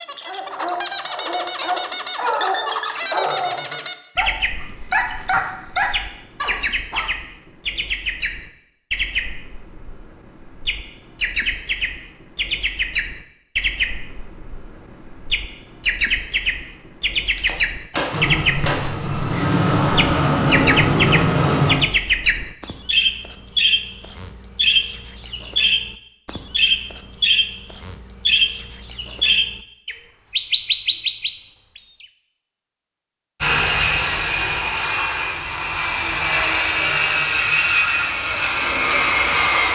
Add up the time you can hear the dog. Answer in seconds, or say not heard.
7 s.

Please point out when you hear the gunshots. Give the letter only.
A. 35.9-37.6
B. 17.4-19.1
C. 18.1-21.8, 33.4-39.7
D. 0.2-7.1
B.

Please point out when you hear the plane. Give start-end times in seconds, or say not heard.
18.1-21.8, 33.4-39.7.